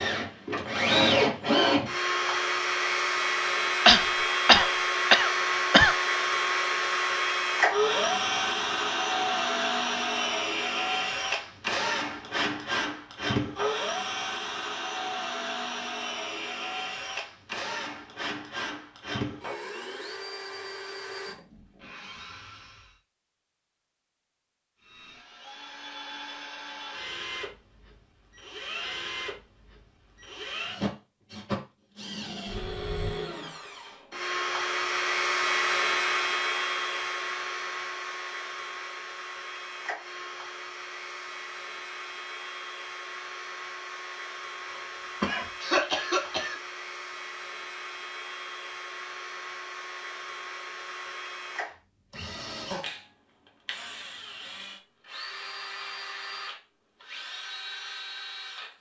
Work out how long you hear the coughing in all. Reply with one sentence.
You can hear the coughing for 4 seconds altogether.